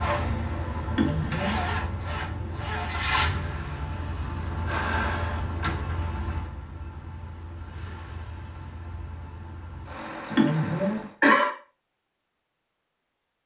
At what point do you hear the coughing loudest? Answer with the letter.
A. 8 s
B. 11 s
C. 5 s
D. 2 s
B.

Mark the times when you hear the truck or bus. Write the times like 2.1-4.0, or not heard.
0.0-11.2.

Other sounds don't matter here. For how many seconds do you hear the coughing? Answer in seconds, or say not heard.
2 s.